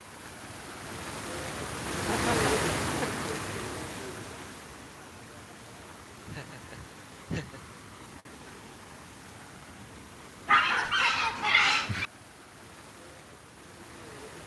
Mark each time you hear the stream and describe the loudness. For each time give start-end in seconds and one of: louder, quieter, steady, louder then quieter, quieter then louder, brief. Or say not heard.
0.0-14.4 quieter.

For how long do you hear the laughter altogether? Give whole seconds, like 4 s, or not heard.
4 s.